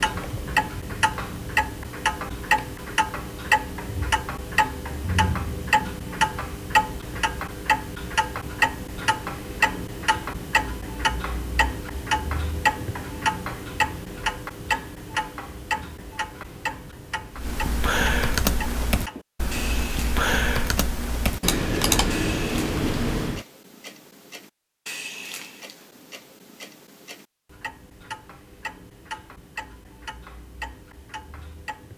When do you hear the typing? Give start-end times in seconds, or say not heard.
17.4-23.4.